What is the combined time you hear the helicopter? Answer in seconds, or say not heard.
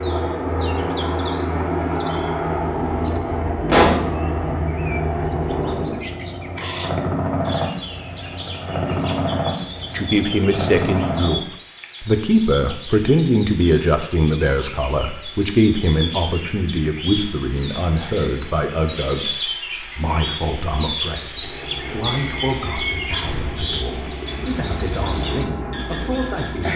17 s.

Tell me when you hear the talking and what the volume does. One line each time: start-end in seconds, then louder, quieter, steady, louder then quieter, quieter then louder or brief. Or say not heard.
9.9-11.4 brief
12.0-26.7 quieter.